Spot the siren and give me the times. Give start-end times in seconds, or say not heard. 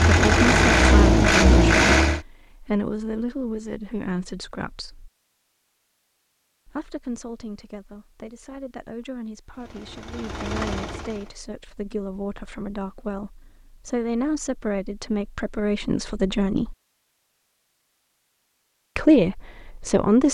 not heard.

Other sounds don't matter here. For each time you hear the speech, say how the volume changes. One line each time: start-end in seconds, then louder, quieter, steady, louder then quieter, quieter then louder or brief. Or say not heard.
0.0-5.1 quieter
6.7-16.8 louder
18.9-20.2 brief.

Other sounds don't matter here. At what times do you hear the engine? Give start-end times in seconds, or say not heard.
0.0-2.2, 9.5-11.3.